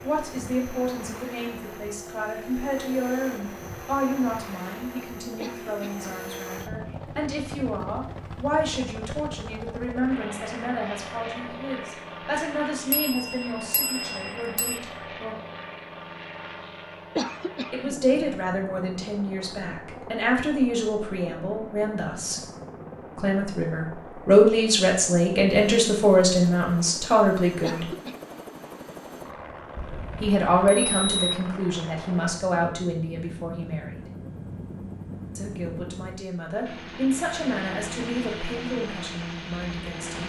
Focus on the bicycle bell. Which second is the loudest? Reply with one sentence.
The loudest moment of the bicycle bell is at 31 seconds.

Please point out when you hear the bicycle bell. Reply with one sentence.
You can hear the bicycle bell from 12.9 to 14.8 s and from 29.8 to 31.4 s.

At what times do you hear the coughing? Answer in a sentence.
You can hear the coughing from 5.3 to 6.2 s, from 17.1 to 17.9 s and from 27.6 to 28.1 s.